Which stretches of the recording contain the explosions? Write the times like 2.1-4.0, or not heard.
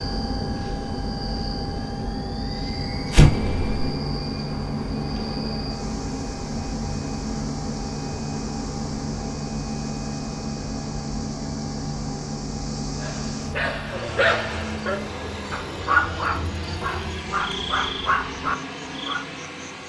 3.1-4.0.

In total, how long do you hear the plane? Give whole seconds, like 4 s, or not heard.
20 s.